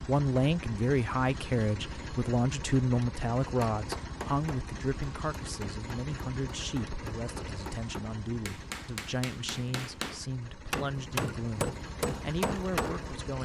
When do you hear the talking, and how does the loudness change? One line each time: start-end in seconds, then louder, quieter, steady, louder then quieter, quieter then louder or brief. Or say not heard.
0.1-13.3 quieter.